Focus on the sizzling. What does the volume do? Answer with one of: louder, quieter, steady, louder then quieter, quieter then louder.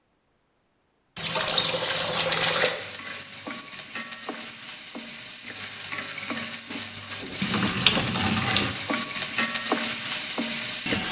louder.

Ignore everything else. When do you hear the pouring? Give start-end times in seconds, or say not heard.
1.1-2.8, 7.2-8.8.